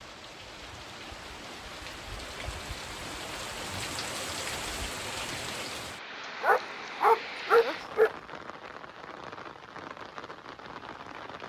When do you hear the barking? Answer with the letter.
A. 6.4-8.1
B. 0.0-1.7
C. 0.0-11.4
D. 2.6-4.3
A.